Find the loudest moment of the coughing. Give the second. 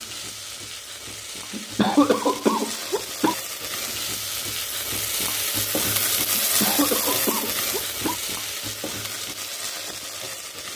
2 s.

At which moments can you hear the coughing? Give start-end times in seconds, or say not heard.
1.5-3.4, 6.3-8.2.